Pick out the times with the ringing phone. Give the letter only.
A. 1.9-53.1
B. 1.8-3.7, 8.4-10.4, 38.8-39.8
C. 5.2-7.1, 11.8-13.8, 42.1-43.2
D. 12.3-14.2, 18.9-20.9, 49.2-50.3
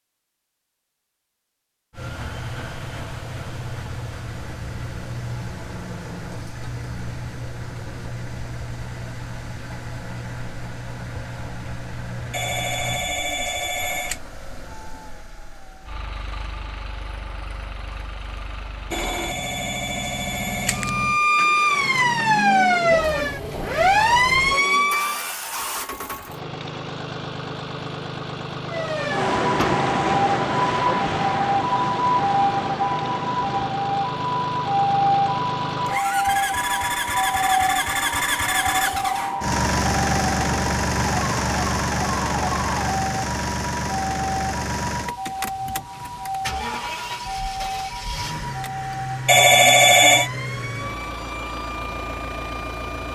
D.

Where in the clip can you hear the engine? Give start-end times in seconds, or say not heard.
1.9-53.1.